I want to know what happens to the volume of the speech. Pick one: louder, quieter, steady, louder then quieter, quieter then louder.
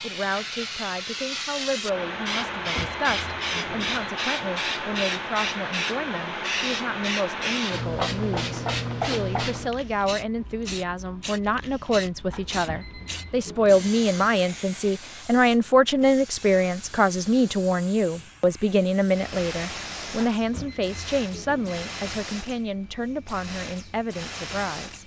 louder then quieter.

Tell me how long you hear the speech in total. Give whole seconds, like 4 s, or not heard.
25 s.